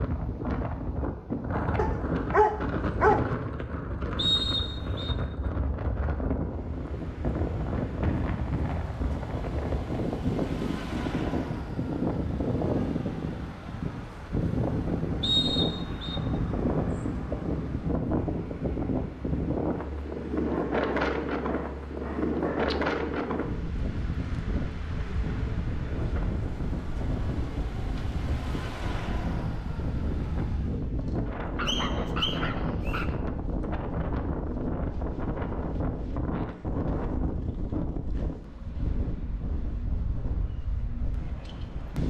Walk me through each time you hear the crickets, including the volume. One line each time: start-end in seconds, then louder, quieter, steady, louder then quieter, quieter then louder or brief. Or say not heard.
not heard.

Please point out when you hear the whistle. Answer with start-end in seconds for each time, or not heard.
4.2-5.2, 15.2-16.2, 31.6-33.0.